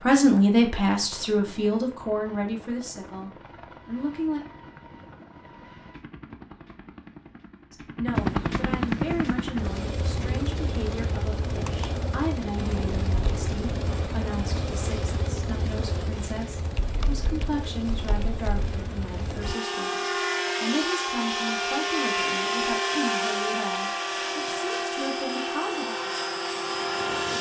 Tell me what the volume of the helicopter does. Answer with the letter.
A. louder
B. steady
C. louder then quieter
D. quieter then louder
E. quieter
A.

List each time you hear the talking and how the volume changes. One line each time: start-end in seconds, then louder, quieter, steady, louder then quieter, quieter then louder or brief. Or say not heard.
0.0-4.4 quieter
7.7-25.9 steady.